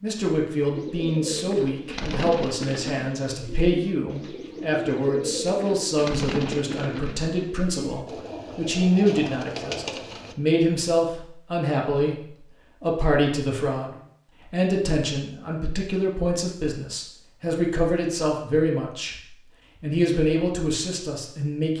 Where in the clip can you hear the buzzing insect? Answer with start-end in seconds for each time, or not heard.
not heard.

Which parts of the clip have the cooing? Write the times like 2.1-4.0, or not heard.
0.7-10.3.